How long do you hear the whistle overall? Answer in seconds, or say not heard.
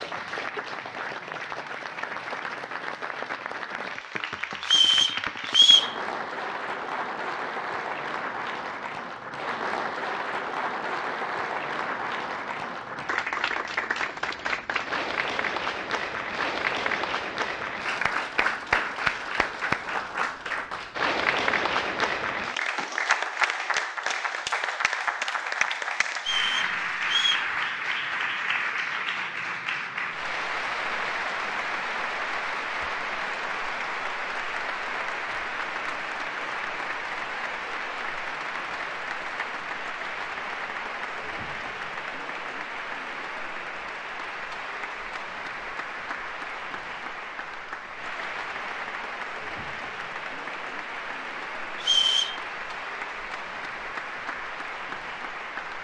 3 s.